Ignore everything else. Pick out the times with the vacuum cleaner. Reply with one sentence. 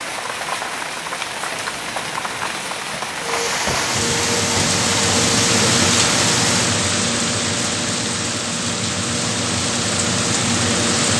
You can hear the vacuum cleaner from 3.1 to 6.5 s.